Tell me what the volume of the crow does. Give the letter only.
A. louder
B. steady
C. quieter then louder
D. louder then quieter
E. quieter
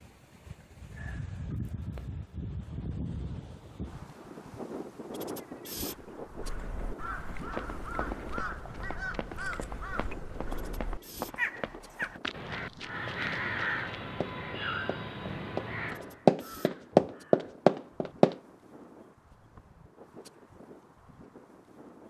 D.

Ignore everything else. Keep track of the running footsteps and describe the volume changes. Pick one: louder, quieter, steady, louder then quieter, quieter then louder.
louder.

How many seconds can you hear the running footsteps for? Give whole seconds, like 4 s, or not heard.
11 s.